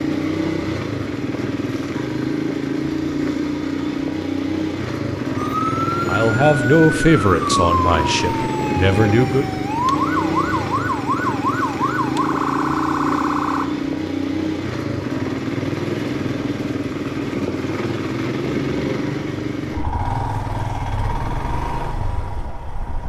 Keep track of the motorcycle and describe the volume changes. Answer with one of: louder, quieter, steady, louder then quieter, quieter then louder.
steady.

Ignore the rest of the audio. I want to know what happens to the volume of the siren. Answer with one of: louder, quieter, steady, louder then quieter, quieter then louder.
steady.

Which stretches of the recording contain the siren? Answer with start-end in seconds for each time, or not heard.
5.3-13.7.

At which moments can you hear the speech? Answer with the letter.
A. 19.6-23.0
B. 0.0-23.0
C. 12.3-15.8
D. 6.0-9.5
D.